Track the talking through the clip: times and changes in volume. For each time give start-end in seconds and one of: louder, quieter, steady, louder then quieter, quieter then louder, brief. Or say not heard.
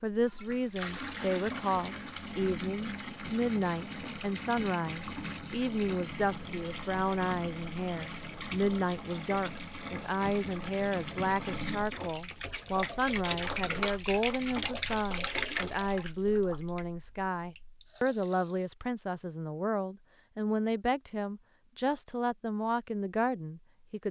0.0-24.0 steady.